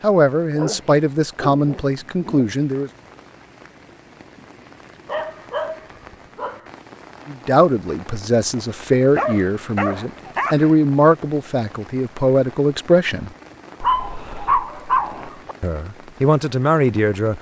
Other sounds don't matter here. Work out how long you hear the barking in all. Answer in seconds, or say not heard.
7 s.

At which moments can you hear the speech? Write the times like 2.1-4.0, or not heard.
0.0-2.9, 7.2-13.3, 15.6-17.3.